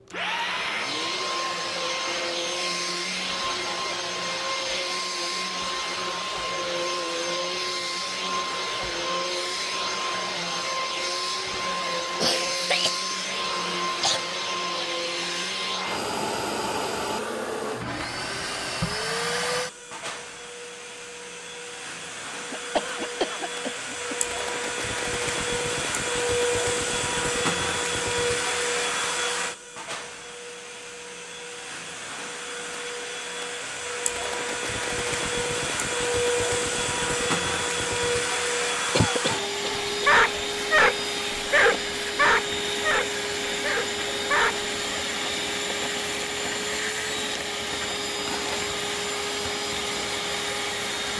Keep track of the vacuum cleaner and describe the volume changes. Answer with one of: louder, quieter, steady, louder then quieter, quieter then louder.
steady.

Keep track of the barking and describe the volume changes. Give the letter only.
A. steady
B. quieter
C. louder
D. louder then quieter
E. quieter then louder
B.